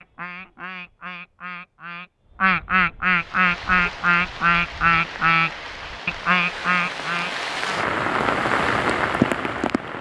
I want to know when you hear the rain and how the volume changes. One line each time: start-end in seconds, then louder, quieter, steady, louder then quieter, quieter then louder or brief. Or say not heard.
3.0-9.9 louder.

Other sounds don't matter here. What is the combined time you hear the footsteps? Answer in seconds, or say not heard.
not heard.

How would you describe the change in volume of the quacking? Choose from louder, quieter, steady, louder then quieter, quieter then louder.
louder.